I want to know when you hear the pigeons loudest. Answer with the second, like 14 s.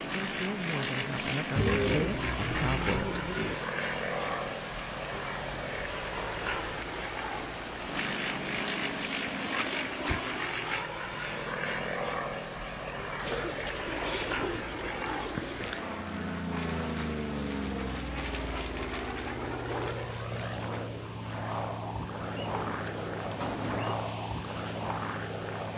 2 s.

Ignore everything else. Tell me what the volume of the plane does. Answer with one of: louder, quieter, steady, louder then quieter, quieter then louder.
steady.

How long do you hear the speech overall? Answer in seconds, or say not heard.
3 s.